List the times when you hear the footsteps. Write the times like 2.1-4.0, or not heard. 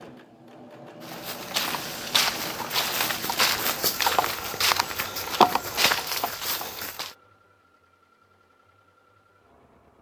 1.0-7.2.